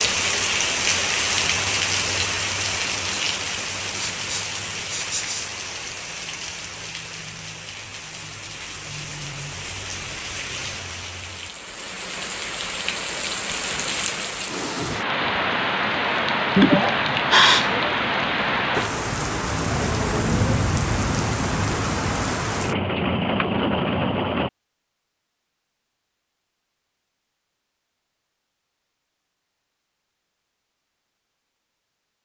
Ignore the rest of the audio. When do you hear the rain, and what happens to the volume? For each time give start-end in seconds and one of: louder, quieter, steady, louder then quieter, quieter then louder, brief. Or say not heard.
0.0-24.5 quieter then louder.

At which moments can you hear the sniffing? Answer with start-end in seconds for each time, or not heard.
4.0-5.5, 16.6-17.9.